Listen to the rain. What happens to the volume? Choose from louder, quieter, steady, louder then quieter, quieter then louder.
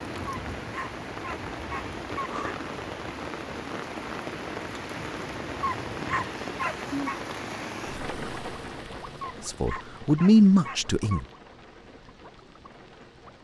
quieter.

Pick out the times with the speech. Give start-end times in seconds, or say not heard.
9.4-11.2.